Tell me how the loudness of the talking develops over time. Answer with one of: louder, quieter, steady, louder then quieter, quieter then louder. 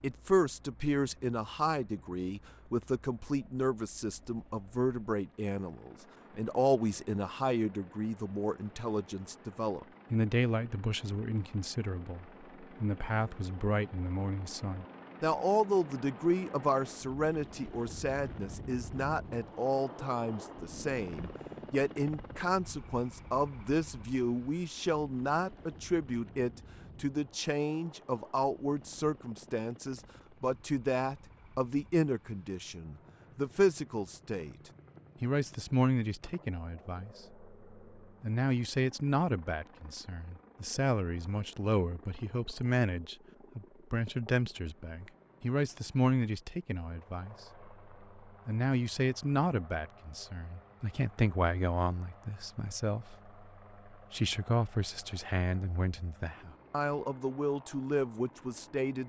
steady.